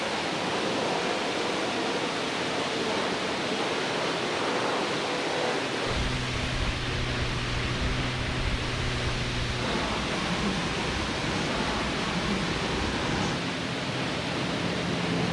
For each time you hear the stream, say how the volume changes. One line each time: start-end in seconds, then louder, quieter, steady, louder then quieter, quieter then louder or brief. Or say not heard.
0.0-15.2 steady.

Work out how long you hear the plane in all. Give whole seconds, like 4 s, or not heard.
15 s.